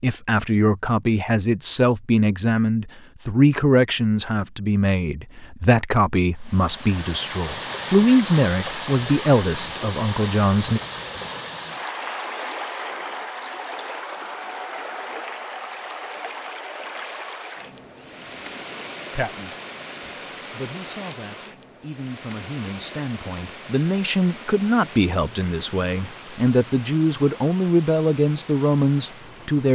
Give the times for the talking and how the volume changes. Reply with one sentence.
You can hear the talking from 0.0 to 10.8 s, at a steady volume; and from 19.1 to 29.7 s, getting louder.